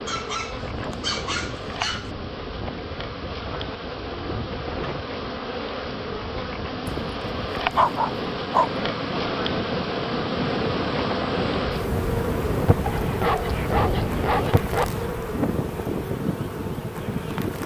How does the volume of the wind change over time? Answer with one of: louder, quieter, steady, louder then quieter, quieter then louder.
louder.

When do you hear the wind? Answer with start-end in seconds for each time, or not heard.
0.0-17.6.